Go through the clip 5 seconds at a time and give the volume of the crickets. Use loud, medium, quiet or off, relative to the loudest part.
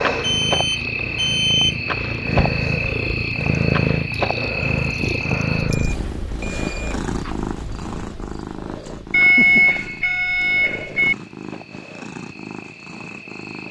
loud, medium, quiet.